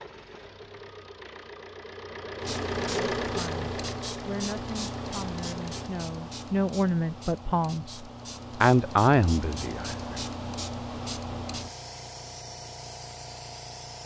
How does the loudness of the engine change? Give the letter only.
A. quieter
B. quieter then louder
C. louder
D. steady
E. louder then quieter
E.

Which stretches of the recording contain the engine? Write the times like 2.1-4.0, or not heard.
0.0-5.9.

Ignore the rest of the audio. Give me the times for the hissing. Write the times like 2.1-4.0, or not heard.
2.4-14.0.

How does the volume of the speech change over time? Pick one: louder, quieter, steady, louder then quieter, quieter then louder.
louder.